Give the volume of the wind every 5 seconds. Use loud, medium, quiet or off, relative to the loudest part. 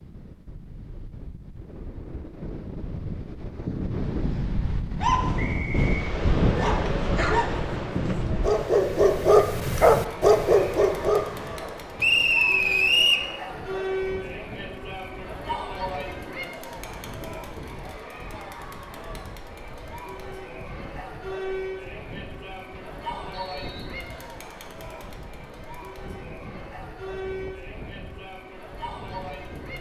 medium, loud, quiet, quiet, quiet, quiet.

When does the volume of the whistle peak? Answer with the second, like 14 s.
13 s.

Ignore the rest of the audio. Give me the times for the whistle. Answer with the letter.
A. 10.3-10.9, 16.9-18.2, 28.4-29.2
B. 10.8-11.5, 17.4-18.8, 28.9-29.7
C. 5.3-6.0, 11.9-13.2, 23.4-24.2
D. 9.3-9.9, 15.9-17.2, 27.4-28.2
C.